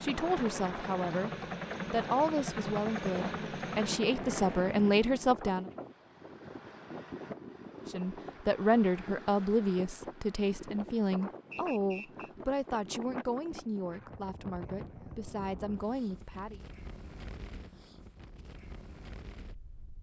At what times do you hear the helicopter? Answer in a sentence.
The helicopter can be heard from 0.0 to 5.4 s.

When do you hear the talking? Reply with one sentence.
You can hear the talking from 0.0 to 5.7 s and from 7.9 to 16.6 s.